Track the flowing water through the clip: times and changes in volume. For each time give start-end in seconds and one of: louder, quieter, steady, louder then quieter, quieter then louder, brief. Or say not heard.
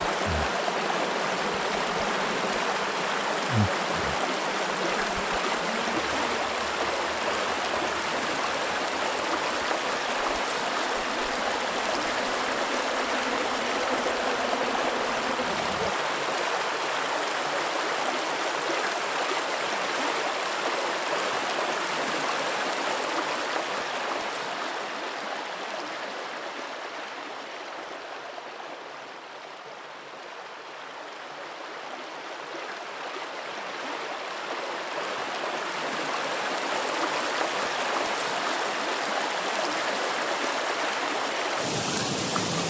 0.0-42.6 quieter then louder.